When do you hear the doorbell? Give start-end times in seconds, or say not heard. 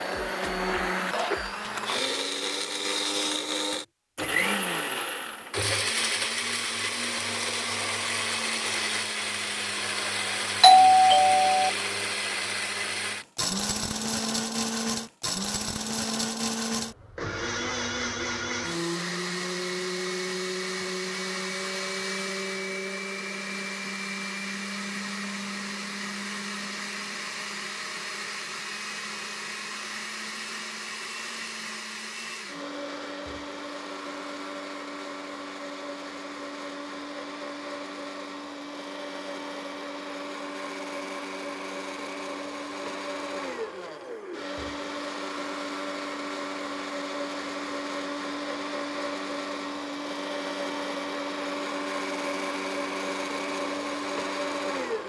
10.6-11.7.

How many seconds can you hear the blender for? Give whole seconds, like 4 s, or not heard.
55 s.